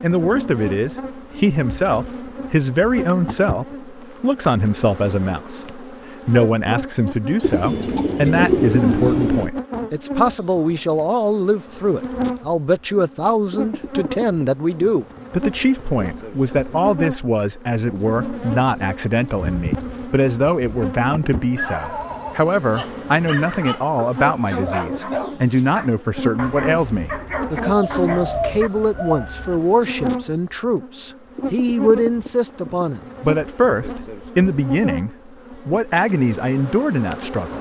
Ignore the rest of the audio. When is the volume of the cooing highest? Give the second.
9 s.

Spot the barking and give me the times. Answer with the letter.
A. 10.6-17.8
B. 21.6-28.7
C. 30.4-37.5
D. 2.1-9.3
B.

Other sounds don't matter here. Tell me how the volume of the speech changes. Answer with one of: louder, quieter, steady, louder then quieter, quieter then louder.
steady.